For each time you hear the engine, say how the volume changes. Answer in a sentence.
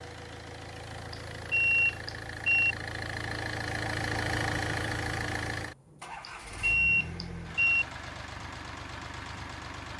The engine can be heard from 0.0 to 9.9 s, getting louder then quieter.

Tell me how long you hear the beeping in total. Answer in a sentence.
The beeping can be heard for 3 seconds in total.